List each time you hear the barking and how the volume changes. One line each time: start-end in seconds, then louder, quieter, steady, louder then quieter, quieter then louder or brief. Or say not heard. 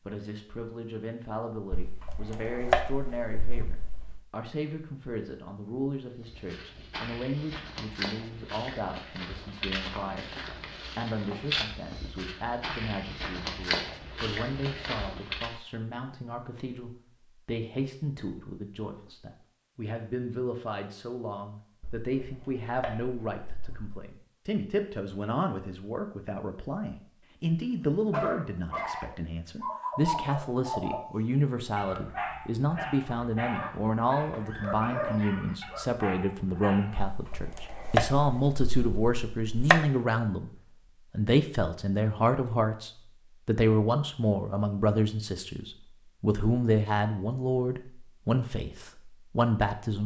28.1-31.1 brief
31.8-37.1 steady.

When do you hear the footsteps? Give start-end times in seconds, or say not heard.
6.2-15.6.